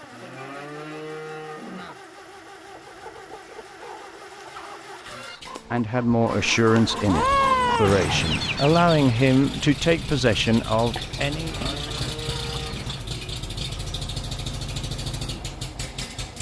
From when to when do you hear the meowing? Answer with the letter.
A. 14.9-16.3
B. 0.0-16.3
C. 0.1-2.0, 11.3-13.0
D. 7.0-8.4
D.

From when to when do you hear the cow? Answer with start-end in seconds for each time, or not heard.
0.1-2.0, 11.3-13.0.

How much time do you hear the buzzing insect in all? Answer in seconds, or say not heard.
not heard.